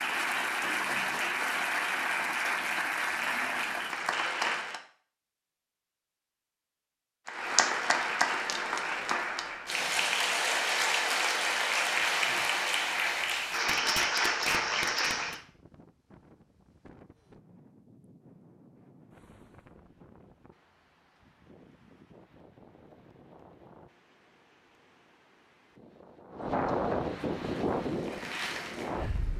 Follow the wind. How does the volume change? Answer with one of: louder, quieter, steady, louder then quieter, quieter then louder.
louder.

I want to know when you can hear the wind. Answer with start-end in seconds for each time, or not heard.
14.6-29.3.